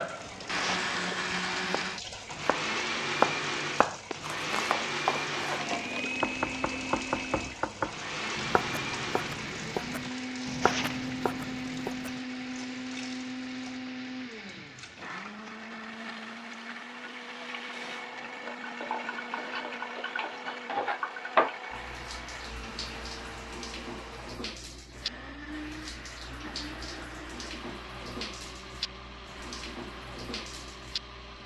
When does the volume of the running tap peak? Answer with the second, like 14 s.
21 s.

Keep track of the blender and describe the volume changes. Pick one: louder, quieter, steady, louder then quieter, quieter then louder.
quieter.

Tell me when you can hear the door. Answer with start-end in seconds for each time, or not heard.
not heard.